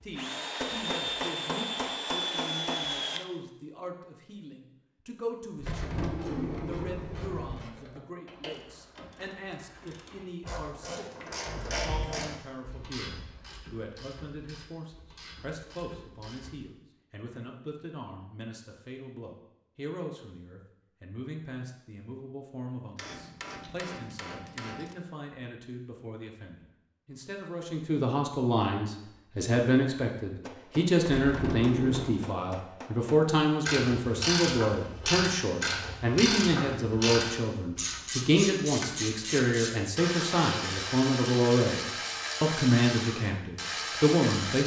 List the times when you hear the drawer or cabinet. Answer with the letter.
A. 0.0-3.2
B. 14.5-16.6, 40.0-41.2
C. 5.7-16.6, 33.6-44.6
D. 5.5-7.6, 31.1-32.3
D.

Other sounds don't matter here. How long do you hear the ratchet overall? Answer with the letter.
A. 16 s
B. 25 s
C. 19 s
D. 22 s
D.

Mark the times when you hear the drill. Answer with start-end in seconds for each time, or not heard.
0.0-3.2.